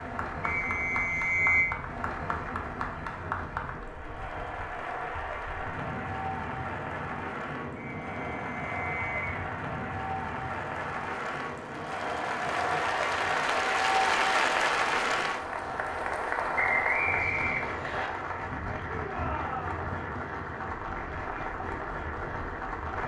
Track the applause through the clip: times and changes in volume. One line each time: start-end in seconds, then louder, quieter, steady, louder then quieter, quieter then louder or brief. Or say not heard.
0.0-23.0 louder then quieter.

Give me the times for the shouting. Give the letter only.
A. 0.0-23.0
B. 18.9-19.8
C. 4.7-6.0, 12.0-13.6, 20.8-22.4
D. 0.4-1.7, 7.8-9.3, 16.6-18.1
B.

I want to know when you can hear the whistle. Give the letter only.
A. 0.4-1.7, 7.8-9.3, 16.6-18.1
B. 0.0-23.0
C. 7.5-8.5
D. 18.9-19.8
A.